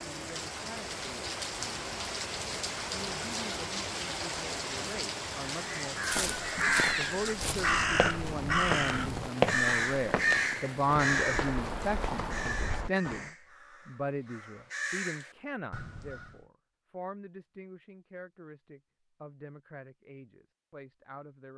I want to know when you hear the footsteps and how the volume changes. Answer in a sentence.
You can hear the footsteps from 6.0 to 13.3 s, getting louder then quieter.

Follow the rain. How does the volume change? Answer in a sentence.
The volume of the rain goes down.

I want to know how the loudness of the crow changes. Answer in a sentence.
The loudness of the crow goes down.